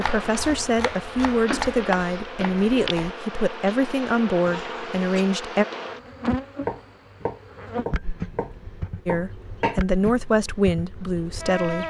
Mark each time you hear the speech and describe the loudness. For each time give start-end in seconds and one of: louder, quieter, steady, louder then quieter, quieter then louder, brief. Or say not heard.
0.0-5.7 steady
9.1-11.8 brief.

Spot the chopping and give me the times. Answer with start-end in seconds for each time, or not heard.
0.0-3.1, 6.5-9.8.